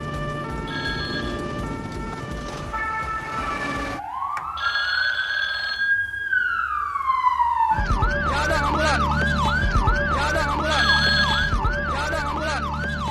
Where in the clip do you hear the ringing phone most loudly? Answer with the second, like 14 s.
11 s.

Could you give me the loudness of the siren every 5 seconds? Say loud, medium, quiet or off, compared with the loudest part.
medium, loud, loud.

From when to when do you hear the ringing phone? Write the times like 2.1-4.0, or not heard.
0.7-1.4, 4.5-6.0, 10.7-11.5.